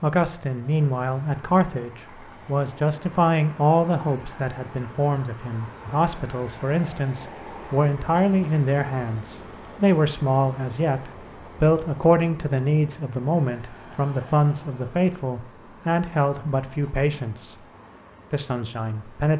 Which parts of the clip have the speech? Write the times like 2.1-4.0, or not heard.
0.0-17.6, 18.3-19.3.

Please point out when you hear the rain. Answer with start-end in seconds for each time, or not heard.
not heard.